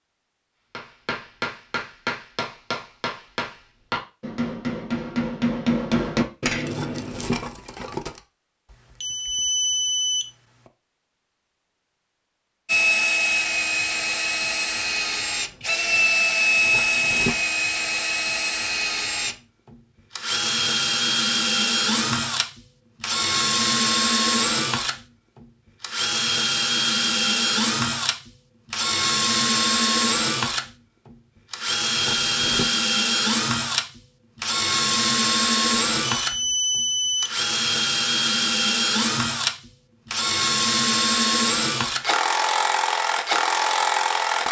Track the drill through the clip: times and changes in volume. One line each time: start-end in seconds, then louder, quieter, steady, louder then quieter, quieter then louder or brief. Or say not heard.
12.7-44.4 steady.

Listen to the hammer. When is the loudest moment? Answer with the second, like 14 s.
6 s.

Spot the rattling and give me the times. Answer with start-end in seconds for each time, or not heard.
6.7-8.2, 16.6-17.4, 31.9-32.7.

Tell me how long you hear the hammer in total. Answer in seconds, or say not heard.
7 s.